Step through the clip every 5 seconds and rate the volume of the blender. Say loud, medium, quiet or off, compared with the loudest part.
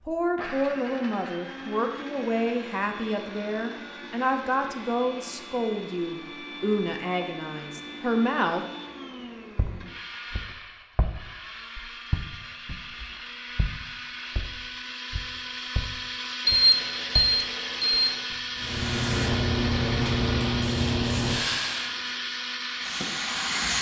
medium, medium, medium, loud, loud.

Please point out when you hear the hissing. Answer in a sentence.
The hissing can be heard from 18.6 to 23.7 s.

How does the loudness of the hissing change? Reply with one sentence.
The loudness of the hissing goes down.